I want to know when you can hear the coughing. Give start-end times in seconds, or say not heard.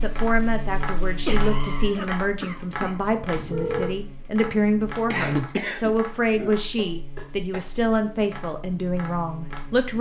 1.2-3.0, 5.1-6.5.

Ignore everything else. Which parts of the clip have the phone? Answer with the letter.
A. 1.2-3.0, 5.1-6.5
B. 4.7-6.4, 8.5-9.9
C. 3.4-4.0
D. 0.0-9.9
C.